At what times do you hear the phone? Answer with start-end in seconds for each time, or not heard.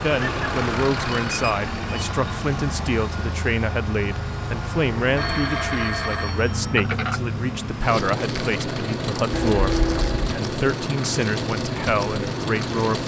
0.1-2.1, 5.2-7.2, 9.3-10.3.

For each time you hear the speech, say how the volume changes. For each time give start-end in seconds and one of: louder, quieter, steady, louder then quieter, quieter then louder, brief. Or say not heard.
0.0-13.0 steady.